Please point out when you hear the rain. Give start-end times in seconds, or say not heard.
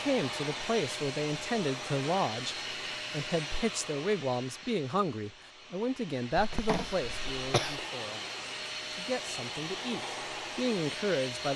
not heard.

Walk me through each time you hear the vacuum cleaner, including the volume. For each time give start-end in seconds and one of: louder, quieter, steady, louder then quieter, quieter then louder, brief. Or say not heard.
0.0-11.5 quieter then louder.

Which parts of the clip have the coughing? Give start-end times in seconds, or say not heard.
6.3-7.8.